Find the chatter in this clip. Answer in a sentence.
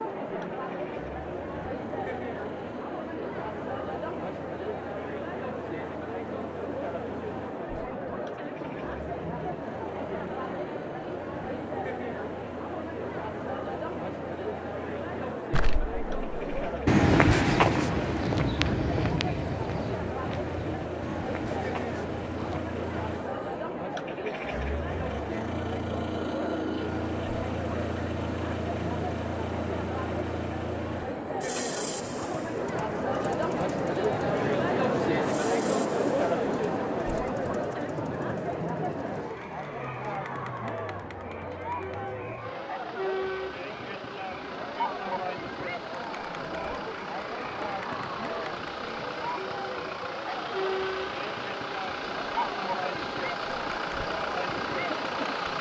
You can hear the chatter from 0.0 to 55.5 s.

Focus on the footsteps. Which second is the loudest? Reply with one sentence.
The loudest moment of the footsteps is at 17 seconds.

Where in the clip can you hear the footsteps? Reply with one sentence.
The footsteps can be heard from 15.5 to 22.6 s.